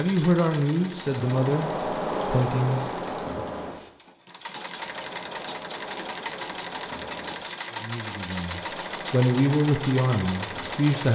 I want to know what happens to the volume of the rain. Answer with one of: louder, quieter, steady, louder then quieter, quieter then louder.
quieter.